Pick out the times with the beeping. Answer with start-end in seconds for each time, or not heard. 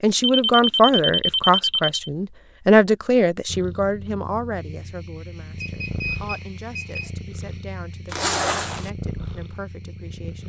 0.1-2.1, 5.6-7.1.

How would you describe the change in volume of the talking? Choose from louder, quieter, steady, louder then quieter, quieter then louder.
quieter.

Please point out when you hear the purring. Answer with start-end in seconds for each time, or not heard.
3.5-10.4.